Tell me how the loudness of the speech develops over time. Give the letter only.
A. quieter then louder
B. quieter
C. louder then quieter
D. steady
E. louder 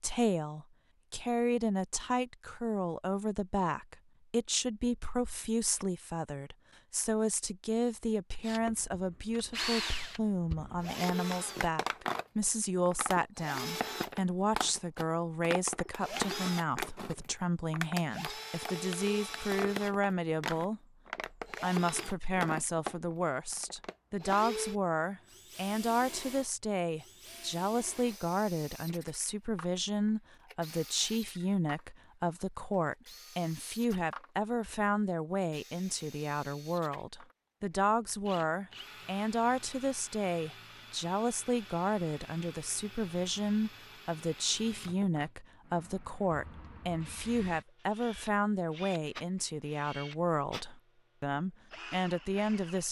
D.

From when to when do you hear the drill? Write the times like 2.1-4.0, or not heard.
8.4-34.3, 35.4-52.8.